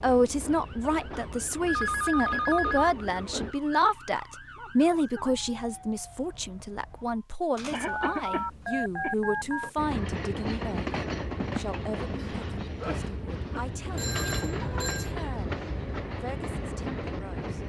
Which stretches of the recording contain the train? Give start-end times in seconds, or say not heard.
0.0-3.5, 9.8-17.6.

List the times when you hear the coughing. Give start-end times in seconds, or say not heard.
0.8-1.3, 7.7-9.2, 12.2-13.7.